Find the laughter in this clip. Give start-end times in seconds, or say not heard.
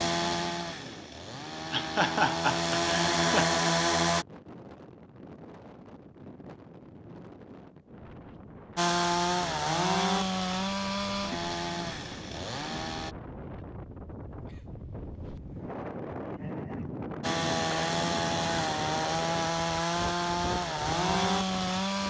1.7-3.5.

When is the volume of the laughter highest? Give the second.
2 s.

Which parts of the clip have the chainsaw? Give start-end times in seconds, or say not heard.
0.0-4.2, 8.8-13.2, 17.2-22.0.